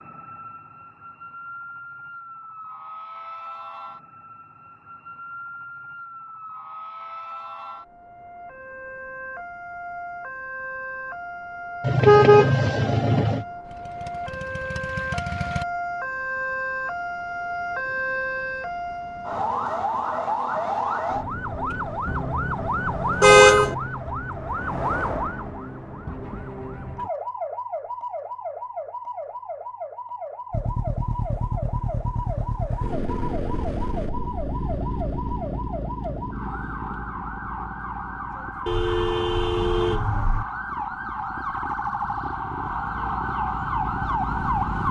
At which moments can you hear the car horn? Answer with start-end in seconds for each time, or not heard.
11.8-13.4, 23.2-23.8, 38.6-40.5.